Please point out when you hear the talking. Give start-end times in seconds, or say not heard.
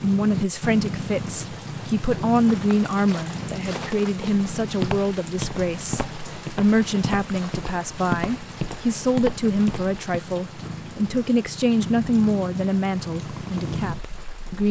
0.0-14.6.